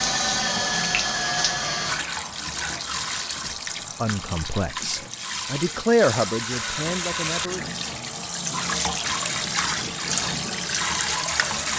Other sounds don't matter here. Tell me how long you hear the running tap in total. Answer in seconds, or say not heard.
12 s.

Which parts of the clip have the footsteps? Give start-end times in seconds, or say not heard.
not heard.